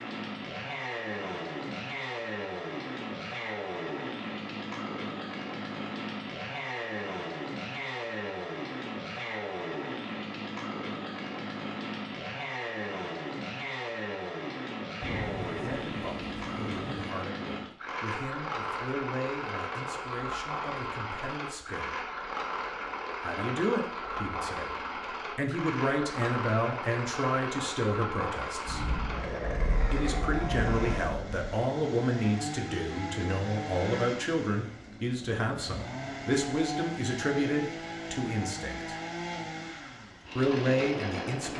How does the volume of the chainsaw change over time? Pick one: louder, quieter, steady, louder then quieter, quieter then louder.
steady.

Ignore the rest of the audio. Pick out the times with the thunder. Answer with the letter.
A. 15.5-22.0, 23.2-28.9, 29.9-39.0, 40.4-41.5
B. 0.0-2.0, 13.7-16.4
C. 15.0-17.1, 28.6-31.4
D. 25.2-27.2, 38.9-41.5
C.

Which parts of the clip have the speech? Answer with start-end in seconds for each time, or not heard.
15.5-22.0, 23.2-28.9, 29.9-39.0, 40.4-41.5.